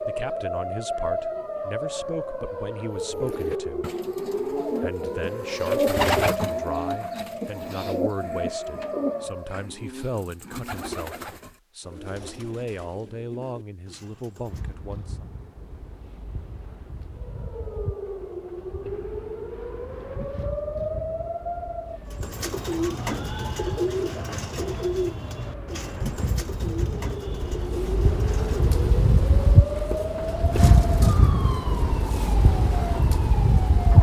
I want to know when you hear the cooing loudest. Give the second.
6 s.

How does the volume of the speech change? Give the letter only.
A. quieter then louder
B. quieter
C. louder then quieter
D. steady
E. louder
D.